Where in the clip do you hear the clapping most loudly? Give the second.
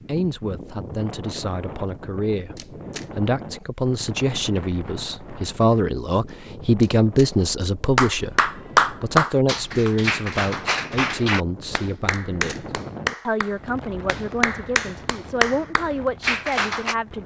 9 s.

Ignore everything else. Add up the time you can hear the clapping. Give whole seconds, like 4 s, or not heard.
9 s.